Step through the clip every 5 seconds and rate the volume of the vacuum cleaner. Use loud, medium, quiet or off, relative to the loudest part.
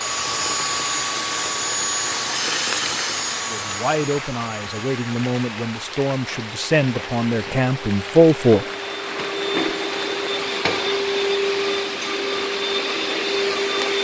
loud, medium, loud.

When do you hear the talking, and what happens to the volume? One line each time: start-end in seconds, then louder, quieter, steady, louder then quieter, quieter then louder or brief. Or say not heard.
3.5-8.7 louder.